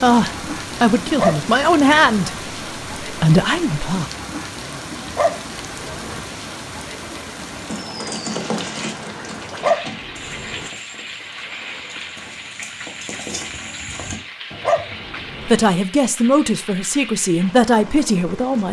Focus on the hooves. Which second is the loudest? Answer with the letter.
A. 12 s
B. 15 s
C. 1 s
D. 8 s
D.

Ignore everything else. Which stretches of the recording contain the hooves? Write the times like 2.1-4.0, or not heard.
7.5-15.2.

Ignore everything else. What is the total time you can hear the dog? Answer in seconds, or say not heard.
4 s.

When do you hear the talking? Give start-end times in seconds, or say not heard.
0.0-4.1, 15.4-18.6.